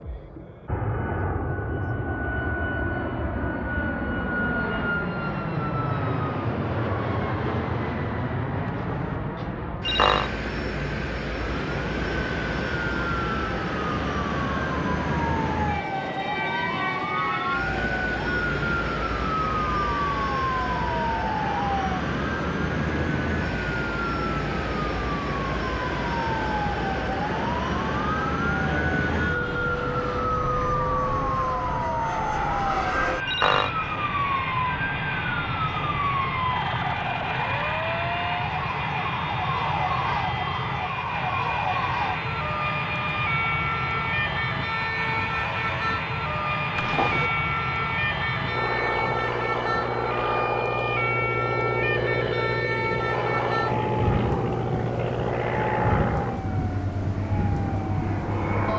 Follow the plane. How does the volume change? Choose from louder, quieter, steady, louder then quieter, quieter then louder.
steady.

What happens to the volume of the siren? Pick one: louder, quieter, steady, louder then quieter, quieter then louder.
steady.